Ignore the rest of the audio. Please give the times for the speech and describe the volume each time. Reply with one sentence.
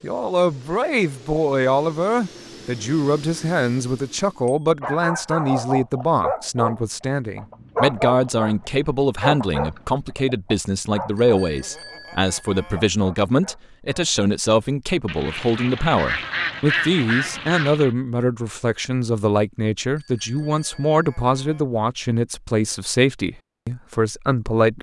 You can hear the speech from 0.0 to 24.7 s, at a steady volume.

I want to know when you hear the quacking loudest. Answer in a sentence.
The volume of the quacking peaks at 17 seconds.